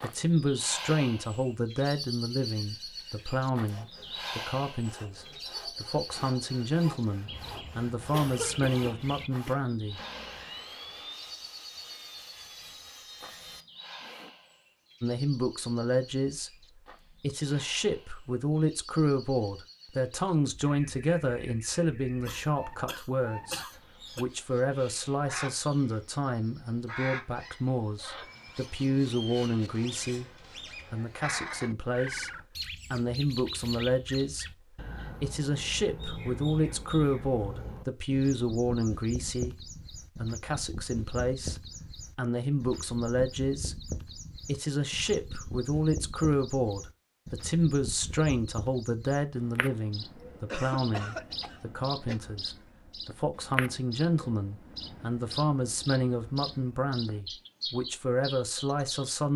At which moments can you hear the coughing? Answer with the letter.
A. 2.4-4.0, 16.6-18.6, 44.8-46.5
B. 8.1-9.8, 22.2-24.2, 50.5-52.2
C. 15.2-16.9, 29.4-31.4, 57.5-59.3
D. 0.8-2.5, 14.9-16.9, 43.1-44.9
B.